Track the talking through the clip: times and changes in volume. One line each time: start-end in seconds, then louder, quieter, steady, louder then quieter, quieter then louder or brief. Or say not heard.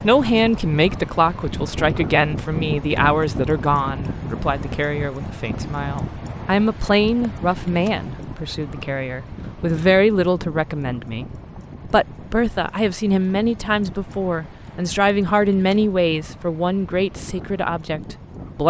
0.0-18.6 steady.